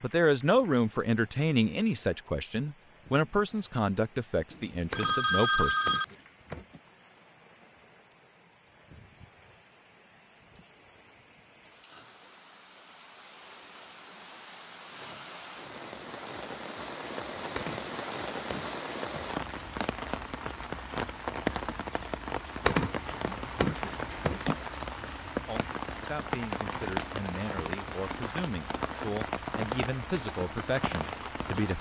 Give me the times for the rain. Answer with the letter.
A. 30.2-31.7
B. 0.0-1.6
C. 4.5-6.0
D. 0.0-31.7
D.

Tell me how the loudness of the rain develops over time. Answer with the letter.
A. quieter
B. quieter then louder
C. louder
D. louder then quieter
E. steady
C.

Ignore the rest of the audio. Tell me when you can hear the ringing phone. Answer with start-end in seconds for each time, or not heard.
4.5-6.0.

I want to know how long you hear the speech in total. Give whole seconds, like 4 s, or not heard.
12 s.